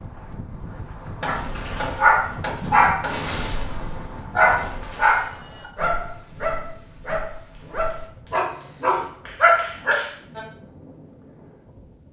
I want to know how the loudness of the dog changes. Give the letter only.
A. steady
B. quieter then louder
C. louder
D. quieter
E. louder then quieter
B.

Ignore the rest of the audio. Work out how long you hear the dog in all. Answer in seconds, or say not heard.
9 s.